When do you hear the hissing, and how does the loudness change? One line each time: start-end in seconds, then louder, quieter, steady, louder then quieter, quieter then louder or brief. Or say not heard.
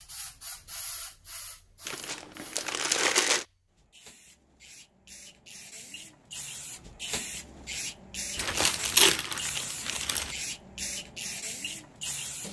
0.0-12.4 quieter then louder.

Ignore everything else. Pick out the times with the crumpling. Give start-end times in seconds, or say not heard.
1.9-3.5, 8.3-10.3.